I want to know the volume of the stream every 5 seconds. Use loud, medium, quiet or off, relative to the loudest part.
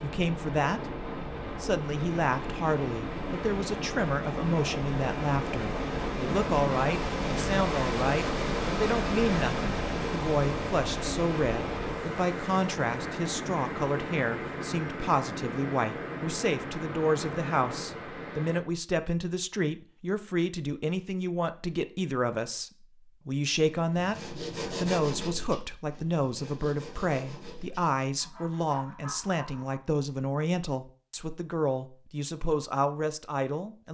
medium, loud, loud, medium, off, off, off.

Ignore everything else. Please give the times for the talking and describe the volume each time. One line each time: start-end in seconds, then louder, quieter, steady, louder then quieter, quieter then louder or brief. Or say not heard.
0.0-33.8 steady.